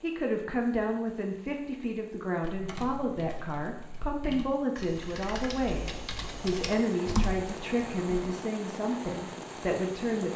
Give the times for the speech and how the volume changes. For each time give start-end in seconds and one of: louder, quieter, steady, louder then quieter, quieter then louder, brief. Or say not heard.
0.0-10.3 steady.